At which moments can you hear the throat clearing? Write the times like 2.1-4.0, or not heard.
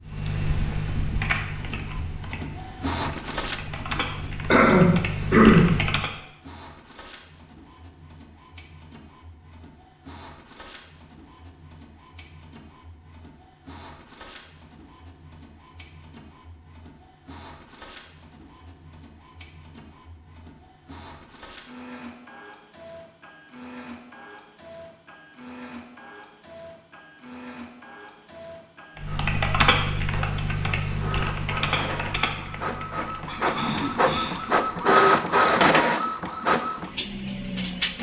4.5-5.7, 33.2-34.4.